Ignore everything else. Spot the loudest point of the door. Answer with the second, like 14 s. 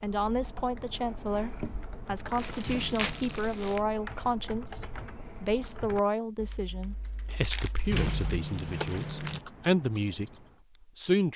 8 s.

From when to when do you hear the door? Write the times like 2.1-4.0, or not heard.
2.6-3.4, 7.9-9.4.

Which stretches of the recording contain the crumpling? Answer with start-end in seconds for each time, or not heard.
2.4-3.8, 7.4-9.4.